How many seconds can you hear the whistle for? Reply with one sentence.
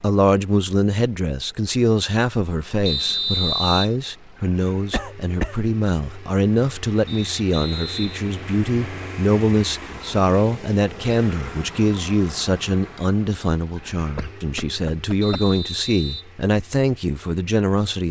You can hear the whistle for 4 seconds altogether.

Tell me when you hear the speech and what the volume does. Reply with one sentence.
The speech can be heard from 0.0 to 18.0 s, at a steady volume.